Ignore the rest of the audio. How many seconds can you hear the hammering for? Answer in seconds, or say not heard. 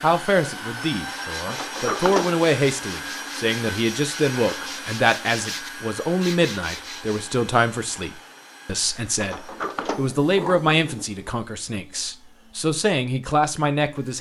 not heard.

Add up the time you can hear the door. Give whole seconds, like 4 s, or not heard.
3 s.